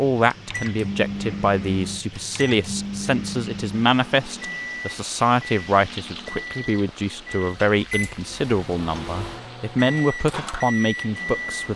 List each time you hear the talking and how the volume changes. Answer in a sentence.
The talking can be heard from 0.0 to 11.7 s, at a steady volume.